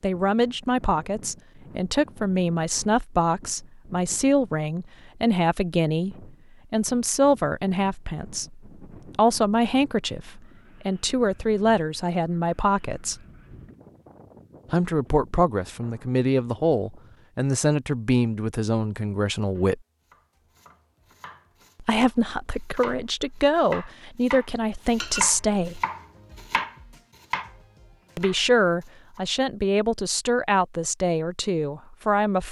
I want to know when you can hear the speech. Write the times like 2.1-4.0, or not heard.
0.0-13.2, 14.7-19.8, 21.8-25.8, 28.1-32.4.